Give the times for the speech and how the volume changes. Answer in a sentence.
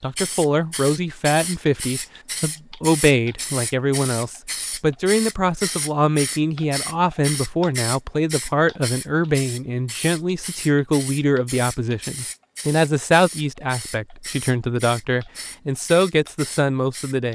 You can hear the speech from 0.0 to 17.3 s, at a steady volume.